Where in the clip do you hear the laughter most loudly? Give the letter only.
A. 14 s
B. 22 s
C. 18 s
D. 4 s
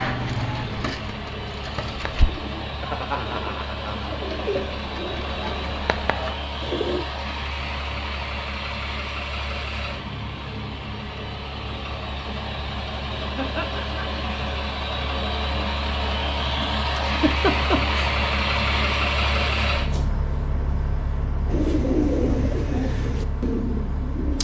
C.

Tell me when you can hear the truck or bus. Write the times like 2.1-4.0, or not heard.
0.0-24.3.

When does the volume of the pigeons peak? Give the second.
22 s.